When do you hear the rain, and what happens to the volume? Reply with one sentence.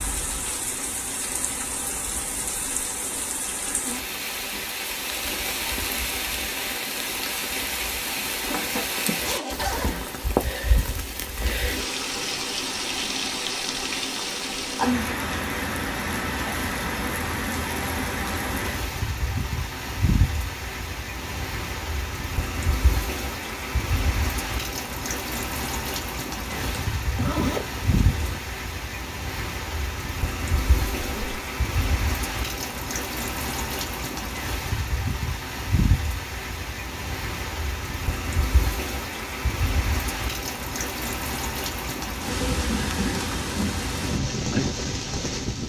The rain can be heard from 0.0 to 45.6 s, at a steady volume.